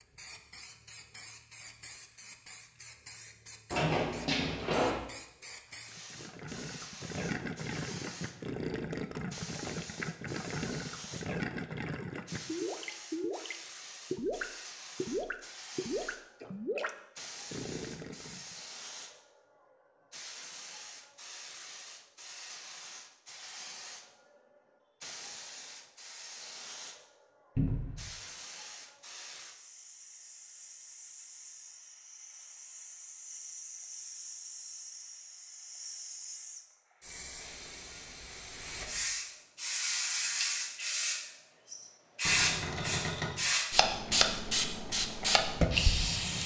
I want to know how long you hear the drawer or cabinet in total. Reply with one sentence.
You can hear the drawer or cabinet for 3 seconds altogether.